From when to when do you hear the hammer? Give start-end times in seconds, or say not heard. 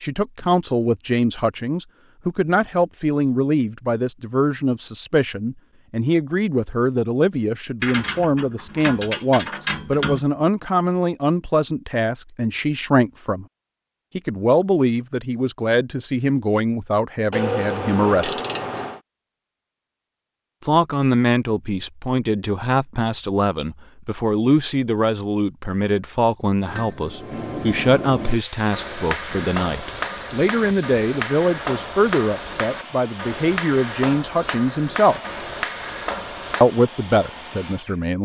26.6-36.6.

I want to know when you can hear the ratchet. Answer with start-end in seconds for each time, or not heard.
7.8-10.2, 17.3-19.0, 29.1-31.2.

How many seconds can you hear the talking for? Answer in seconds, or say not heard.
34 s.